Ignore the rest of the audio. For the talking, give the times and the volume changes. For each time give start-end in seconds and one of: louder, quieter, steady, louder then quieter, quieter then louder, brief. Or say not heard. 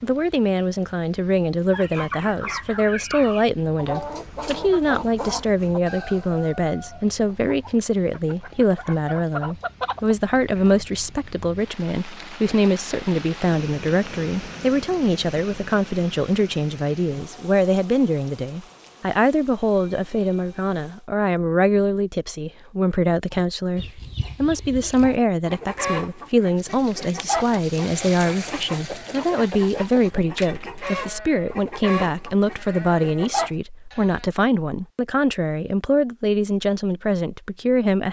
0.0-38.0 steady.